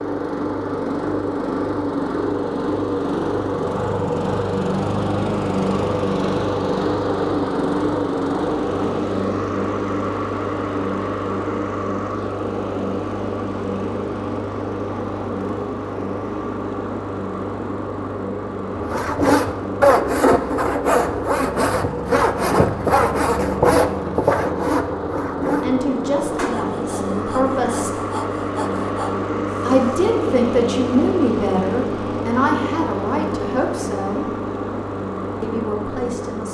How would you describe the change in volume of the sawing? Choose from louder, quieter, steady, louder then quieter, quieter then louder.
quieter.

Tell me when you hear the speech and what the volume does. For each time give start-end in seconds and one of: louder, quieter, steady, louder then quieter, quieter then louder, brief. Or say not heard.
25.6-27.9 brief
29.6-34.3 quieter
35.4-36.4 brief.